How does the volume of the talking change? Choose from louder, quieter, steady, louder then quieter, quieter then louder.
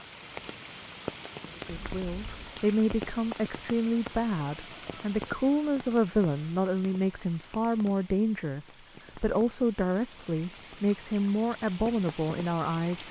steady.